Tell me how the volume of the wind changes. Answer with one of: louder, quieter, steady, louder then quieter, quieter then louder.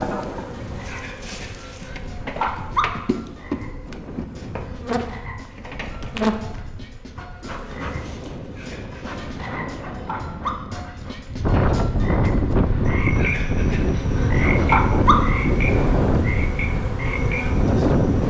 louder.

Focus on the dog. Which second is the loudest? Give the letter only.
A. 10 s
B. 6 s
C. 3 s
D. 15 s
D.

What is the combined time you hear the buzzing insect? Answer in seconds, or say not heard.
18 s.